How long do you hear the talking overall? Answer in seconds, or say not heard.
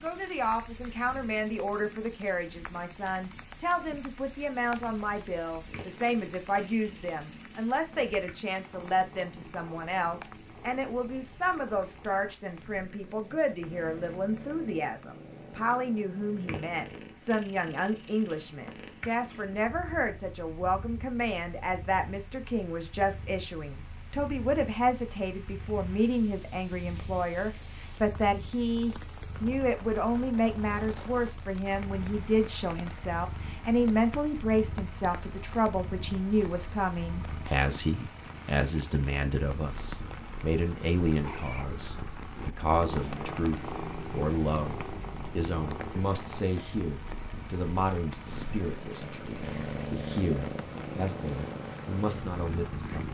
53 s.